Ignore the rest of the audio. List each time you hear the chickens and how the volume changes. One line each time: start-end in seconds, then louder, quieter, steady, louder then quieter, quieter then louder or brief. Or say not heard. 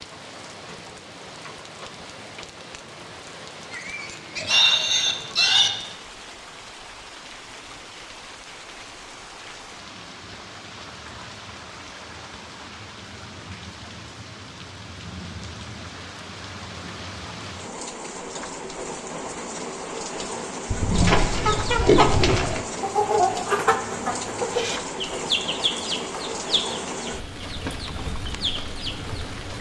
20.9-29.1 quieter.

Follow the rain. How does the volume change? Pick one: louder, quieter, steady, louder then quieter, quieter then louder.
louder.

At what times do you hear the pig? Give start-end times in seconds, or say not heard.
3.7-5.7, 20.7-22.6.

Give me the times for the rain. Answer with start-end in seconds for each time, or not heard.
0.0-29.5.